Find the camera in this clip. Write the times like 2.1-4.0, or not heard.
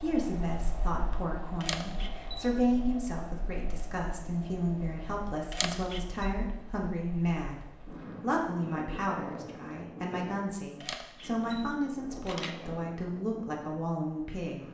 1.6-2.4, 5.5-6.2, 10.8-12.7.